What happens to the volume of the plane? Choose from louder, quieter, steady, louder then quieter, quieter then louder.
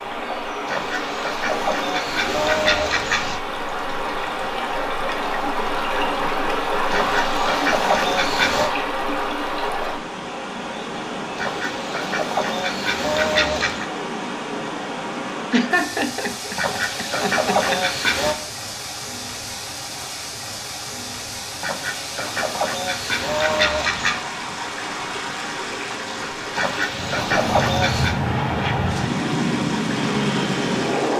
steady.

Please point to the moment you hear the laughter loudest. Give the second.
16 s.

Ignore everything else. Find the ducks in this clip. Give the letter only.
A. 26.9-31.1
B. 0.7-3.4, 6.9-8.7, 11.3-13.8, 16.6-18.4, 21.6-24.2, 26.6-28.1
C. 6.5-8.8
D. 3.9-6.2
B.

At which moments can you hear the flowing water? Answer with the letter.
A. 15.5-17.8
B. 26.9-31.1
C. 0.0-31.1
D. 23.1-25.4
C.